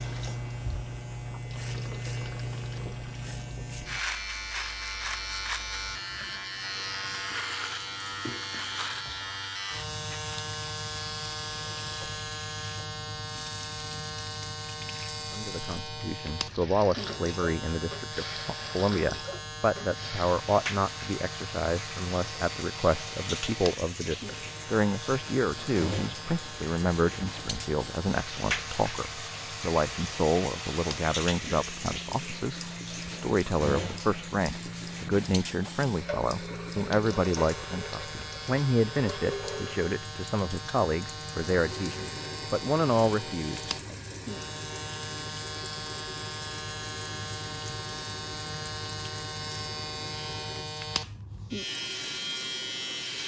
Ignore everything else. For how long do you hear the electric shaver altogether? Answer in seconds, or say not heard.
53 s.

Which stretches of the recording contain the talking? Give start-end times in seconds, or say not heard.
15.3-44.1.